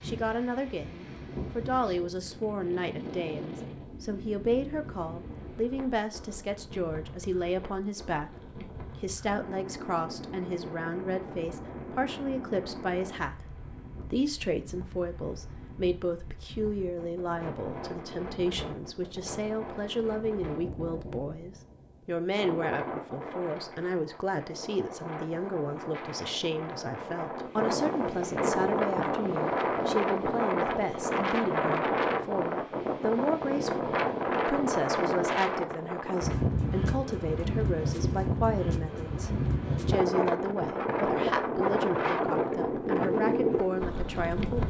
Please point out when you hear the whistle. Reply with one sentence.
You can't hear the whistle here.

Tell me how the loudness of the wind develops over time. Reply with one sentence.
The loudness of the wind goes up.